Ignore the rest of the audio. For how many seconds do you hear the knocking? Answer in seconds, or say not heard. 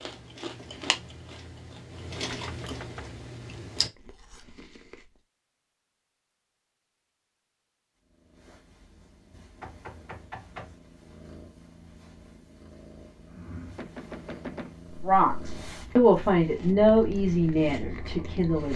3 s.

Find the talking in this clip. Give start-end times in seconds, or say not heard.
15.1-18.7.